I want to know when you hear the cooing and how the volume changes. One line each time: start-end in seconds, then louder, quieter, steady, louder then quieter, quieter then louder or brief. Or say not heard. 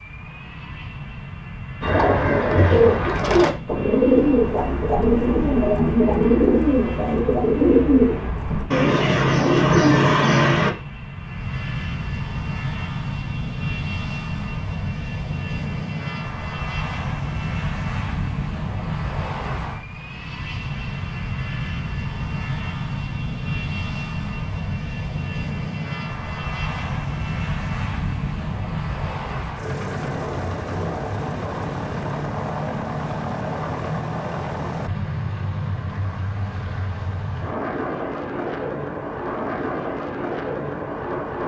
1.8-10.7 steady.